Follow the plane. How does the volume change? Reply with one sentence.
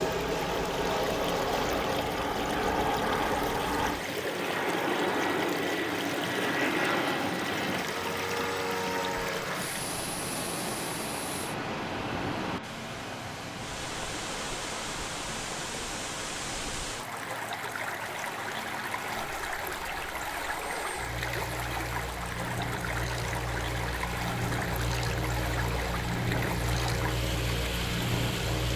The volume of the plane goes down, then up.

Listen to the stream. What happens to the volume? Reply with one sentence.
The volume of the stream stays about the same.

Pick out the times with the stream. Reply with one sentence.
The stream can be heard from 0.0 to 28.7 s.